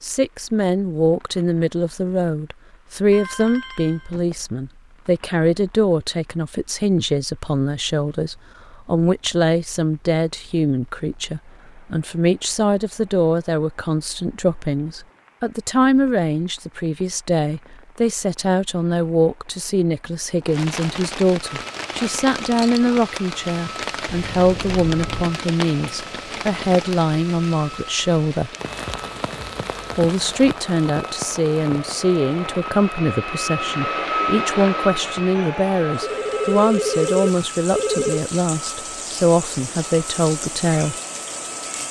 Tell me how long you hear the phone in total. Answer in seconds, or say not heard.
5 s.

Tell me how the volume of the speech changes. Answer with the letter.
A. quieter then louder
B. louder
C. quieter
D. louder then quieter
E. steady
E.